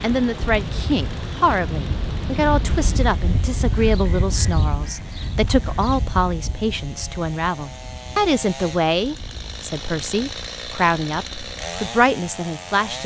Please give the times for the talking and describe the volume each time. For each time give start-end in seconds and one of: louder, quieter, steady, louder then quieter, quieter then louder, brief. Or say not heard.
0.0-13.0 steady.